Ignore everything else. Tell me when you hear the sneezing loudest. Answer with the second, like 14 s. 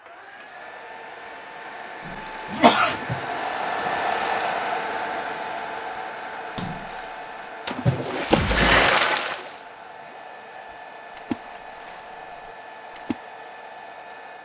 3 s.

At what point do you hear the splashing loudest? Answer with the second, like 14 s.
9 s.